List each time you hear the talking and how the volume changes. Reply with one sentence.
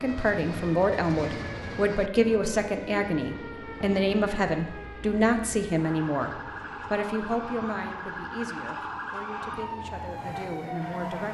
You can hear the talking from 0.0 to 11.2 s, getting quieter.